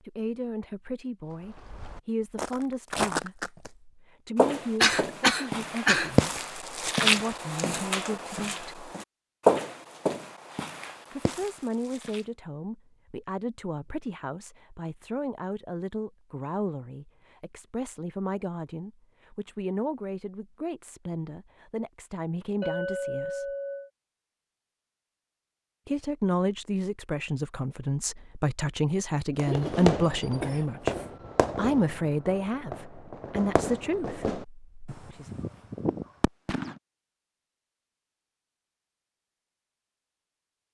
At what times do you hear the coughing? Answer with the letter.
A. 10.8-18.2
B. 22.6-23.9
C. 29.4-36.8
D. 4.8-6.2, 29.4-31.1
D.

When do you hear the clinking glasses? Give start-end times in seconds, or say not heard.
22.6-23.9.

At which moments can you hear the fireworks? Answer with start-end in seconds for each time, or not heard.
29.4-36.8.